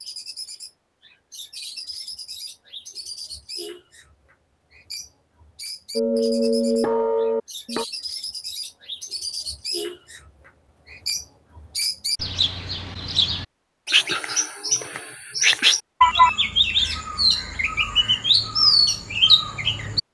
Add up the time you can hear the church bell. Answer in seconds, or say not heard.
2 s.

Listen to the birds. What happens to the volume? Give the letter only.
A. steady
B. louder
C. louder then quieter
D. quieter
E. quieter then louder
B.